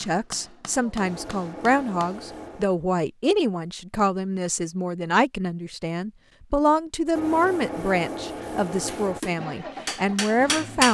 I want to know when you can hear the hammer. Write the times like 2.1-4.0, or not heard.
0.0-2.2, 8.7-10.9.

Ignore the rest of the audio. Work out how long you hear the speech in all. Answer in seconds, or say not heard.
11 s.